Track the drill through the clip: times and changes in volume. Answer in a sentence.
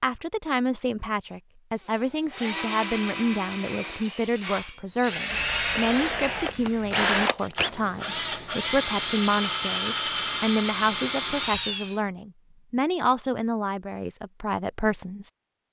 You can hear the drill from 1.9 to 11.9 s, getting louder.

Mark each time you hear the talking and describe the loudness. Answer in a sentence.
You can hear the talking from 0.0 to 15.3 s, at a steady volume.